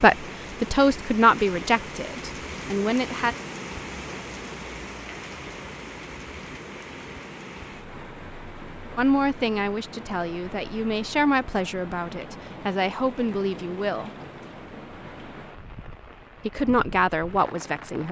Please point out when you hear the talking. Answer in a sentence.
The talking can be heard from 0.0 to 3.4 s, from 8.9 to 14.1 s and from 16.4 to 18.0 s.